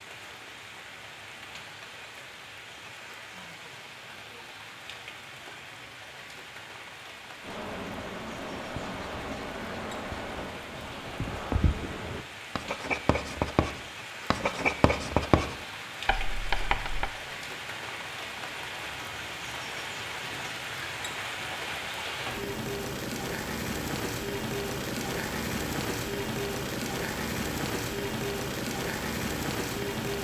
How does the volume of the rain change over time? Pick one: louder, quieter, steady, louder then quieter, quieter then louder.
louder.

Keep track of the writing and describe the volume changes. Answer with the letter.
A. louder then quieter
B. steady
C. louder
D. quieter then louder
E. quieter
C.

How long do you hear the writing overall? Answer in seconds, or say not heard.
10 s.